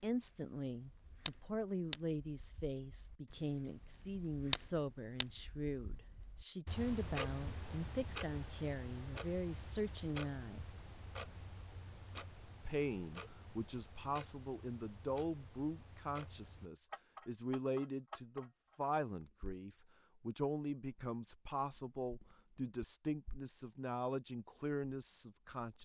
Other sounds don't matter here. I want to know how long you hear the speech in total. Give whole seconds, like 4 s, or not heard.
24 s.